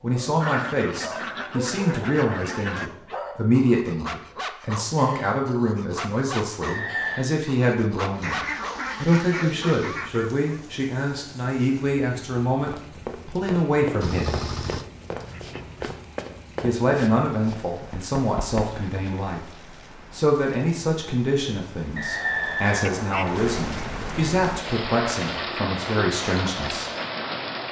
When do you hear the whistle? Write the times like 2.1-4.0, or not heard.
6.7-7.3, 21.9-23.7.